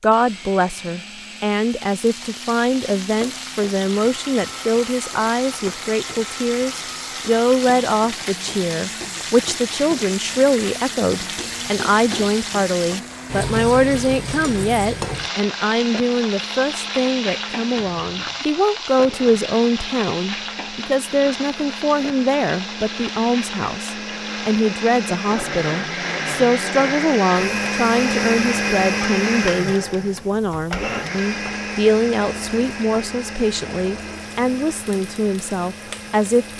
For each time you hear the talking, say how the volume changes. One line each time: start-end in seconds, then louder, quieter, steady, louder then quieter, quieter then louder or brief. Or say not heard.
0.0-36.5 steady.